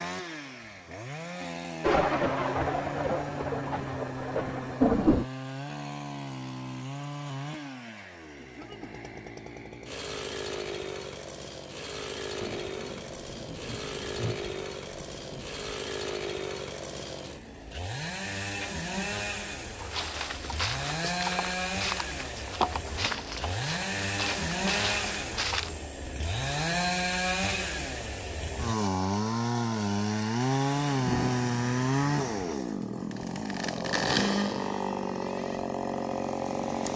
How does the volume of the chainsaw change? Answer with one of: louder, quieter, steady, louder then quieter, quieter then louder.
louder.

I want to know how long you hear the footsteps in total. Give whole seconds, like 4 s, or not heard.
6 s.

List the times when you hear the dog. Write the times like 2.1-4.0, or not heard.
not heard.